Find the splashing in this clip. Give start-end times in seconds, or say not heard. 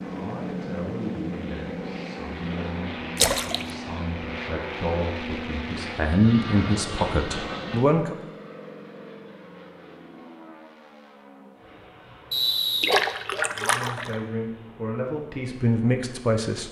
3.1-3.6, 12.8-14.2.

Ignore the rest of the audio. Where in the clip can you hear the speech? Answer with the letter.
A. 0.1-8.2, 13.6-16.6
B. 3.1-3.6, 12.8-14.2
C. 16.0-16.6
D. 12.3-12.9
A.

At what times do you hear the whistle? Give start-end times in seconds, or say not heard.
12.3-12.9.